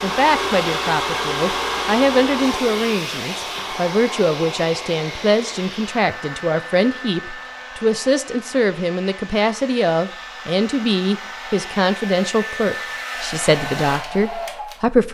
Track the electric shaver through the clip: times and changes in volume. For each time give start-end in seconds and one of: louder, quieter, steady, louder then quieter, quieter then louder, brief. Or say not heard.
not heard.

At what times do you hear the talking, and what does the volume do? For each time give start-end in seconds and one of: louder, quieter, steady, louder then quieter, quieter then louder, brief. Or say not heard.
0.0-15.0 steady.